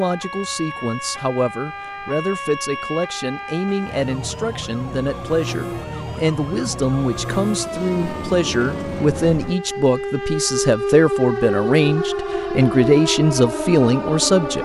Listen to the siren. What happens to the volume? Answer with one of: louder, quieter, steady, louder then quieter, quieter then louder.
louder.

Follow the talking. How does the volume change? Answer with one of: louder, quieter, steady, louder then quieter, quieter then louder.
louder.